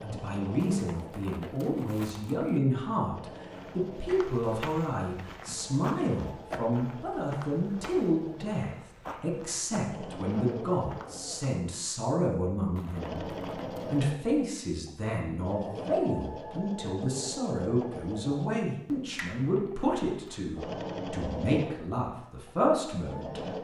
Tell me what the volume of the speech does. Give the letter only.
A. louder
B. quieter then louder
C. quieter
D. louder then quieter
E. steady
E.